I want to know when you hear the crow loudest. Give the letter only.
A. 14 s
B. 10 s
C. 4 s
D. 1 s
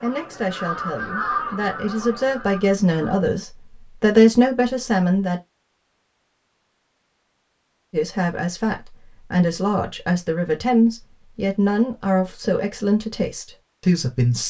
D.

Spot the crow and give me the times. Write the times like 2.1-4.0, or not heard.
0.0-3.2.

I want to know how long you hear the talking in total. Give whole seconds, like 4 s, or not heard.
12 s.